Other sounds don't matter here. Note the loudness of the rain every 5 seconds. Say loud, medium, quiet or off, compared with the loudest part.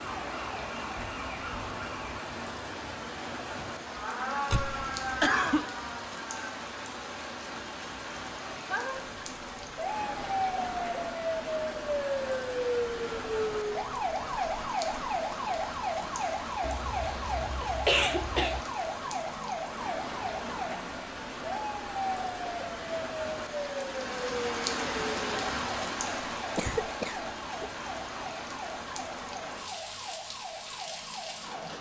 loud, loud, loud, loud, loud, loud, medium.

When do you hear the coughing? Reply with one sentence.
The coughing can be heard from 4.5 to 5.7 s, from 16.6 to 18.6 s and from 26.6 to 27.6 s.